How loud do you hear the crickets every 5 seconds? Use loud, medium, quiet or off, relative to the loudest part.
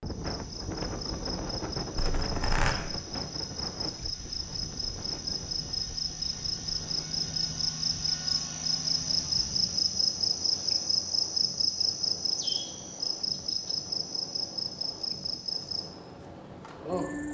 medium, loud, loud, medium.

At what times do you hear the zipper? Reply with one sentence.
You can hear the zipper from 1.9 to 2.8 s.